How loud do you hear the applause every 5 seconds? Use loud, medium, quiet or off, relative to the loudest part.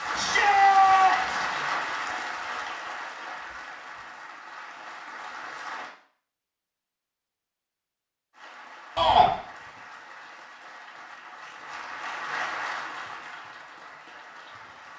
loud, medium, medium.